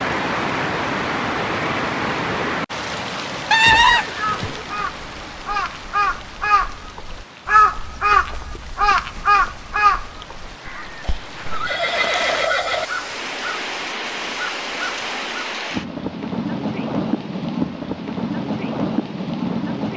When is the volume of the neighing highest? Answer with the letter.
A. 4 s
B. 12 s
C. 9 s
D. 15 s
A.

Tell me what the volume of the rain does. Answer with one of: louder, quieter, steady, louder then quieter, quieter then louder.
quieter then louder.